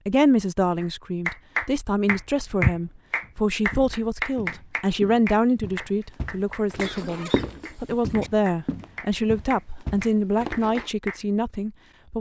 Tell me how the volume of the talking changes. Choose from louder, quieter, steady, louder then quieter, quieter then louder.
steady.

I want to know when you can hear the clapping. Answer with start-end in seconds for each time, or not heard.
0.8-11.2.